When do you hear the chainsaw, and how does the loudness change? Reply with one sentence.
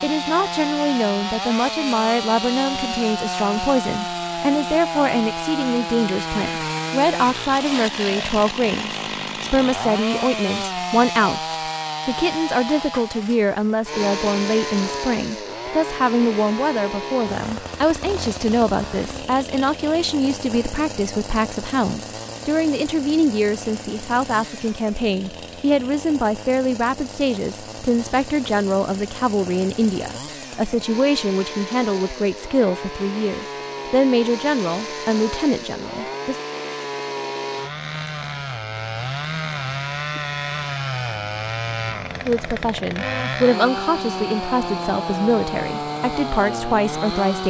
You can hear the chainsaw from 0.0 to 47.4 s, getting quieter then louder.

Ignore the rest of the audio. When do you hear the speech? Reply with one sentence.
You can hear the speech from 0.0 to 36.4 s and from 42.2 to 47.4 s.